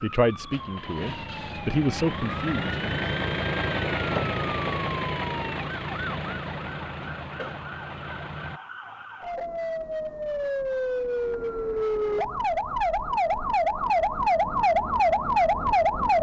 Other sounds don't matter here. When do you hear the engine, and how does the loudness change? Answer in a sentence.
You can hear the engine from 0.1 to 8.6 s, getting louder then quieter.